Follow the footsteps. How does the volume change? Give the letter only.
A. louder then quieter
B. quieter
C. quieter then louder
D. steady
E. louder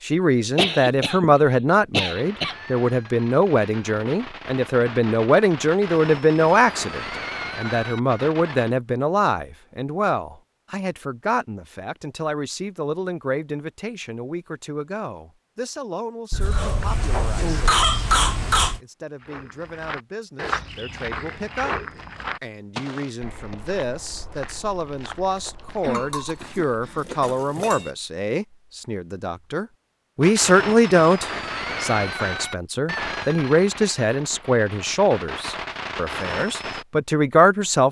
B.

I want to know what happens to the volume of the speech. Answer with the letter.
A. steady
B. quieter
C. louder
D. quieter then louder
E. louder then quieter
D.